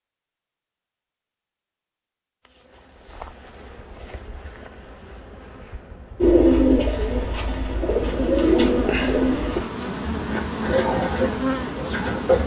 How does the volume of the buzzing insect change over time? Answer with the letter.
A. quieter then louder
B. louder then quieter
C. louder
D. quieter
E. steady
C.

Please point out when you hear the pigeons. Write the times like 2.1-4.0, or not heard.
6.2-12.4.